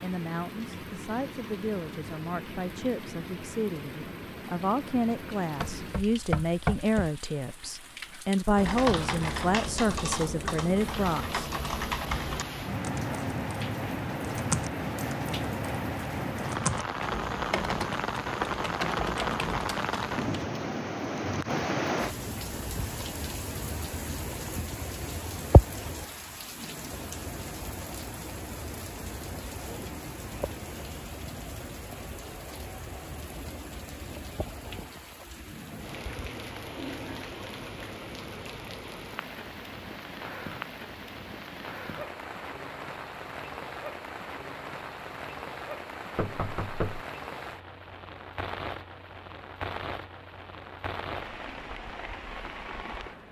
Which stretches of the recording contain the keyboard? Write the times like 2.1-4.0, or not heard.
8.6-20.4.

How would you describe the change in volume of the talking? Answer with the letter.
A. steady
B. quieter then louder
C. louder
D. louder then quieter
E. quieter
C.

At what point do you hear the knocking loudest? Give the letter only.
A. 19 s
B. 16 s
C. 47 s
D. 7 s
D.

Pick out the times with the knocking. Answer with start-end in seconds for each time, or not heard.
5.6-7.1, 18.4-19.3, 46.1-47.0.